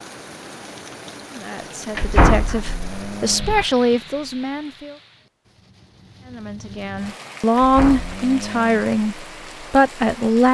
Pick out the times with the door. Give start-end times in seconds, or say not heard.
1.9-3.6, 7.5-8.2.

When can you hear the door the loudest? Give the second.
2 s.